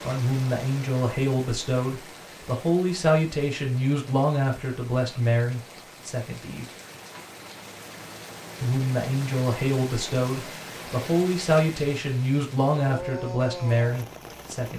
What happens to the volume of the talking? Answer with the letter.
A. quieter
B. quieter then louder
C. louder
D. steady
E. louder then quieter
D.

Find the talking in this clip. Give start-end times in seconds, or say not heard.
0.0-6.7, 8.6-14.7.